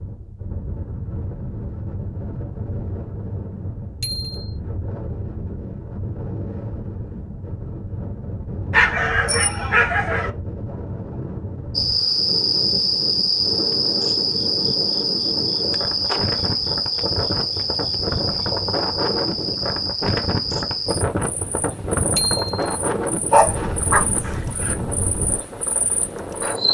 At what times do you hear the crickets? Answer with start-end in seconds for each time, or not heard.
11.8-26.6.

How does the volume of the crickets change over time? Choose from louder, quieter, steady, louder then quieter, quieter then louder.
quieter.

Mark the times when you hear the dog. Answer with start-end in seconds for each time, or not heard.
8.7-10.3, 23.3-24.8.